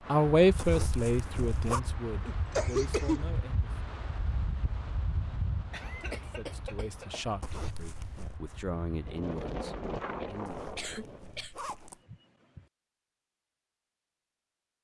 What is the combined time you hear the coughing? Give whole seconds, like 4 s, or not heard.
5 s.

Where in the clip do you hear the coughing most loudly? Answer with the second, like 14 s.
3 s.